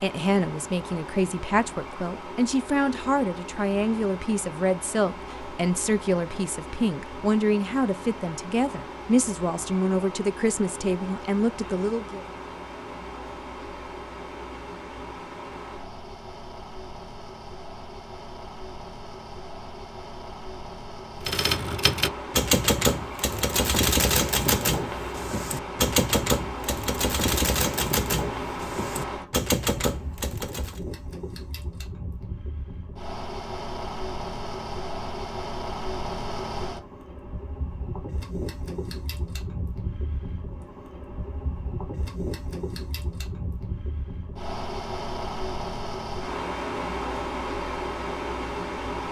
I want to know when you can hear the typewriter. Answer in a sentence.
The typewriter can be heard from 21.2 to 30.8 s.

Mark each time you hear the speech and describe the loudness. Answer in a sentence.
You can hear the speech from 0.0 to 12.2 s, at a steady volume.